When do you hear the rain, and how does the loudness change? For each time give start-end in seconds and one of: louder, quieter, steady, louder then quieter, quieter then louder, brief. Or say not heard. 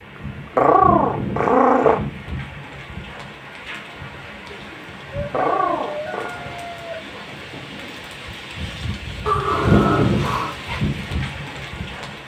0.0-12.2 quieter then louder.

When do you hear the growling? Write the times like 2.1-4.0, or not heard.
0.6-2.0, 5.3-6.3, 9.2-10.6.